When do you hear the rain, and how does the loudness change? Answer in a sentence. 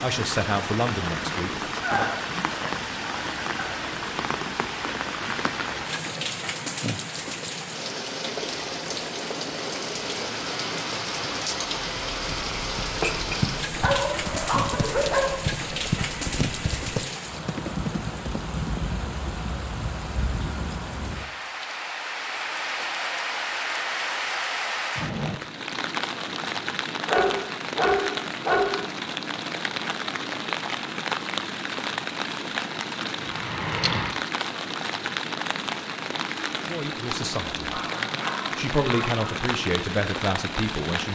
The rain can be heard from 0.0 to 41.0 s, at a steady volume.